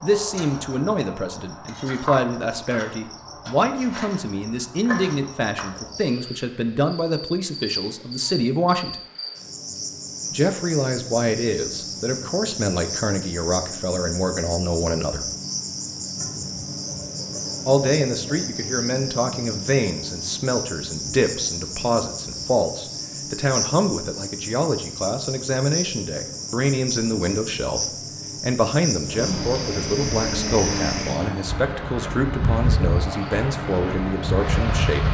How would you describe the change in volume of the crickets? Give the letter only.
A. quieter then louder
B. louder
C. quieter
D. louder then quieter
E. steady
B.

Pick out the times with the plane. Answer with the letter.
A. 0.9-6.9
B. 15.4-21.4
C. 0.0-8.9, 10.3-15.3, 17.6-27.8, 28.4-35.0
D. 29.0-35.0
D.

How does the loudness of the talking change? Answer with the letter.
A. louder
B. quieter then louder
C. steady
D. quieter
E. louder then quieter
C.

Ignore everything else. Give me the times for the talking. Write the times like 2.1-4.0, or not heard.
0.0-8.9, 10.3-15.3, 17.6-27.8, 28.4-35.0.